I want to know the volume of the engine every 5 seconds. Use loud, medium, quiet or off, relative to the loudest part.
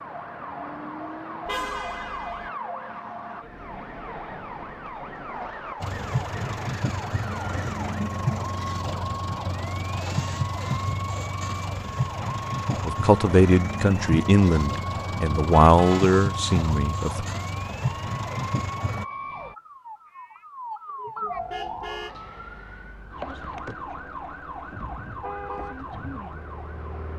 off, loud, loud, loud, off, off.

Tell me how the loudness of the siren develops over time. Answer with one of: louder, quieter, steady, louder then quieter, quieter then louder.
steady.